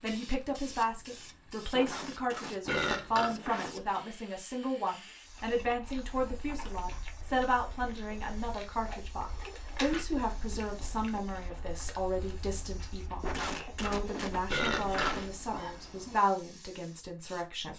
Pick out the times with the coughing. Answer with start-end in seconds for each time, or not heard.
1.8-3.8, 13.2-15.3.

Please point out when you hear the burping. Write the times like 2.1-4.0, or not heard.
2.6-3.4, 9.4-10.1, 14.4-16.1.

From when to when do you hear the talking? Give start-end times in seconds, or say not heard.
0.0-17.7.